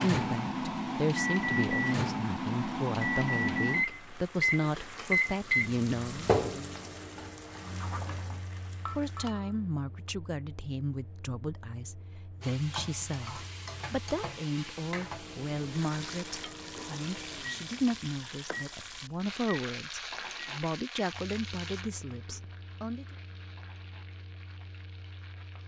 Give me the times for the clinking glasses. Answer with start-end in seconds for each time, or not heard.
8.8-9.7.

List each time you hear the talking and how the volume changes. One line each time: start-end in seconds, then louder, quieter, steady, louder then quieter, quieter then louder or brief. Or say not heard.
0.0-6.3 steady
8.8-23.1 steady.